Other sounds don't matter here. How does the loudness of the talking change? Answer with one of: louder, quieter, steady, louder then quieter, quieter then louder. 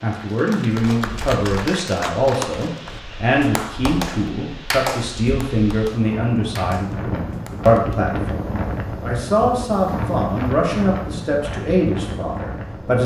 steady.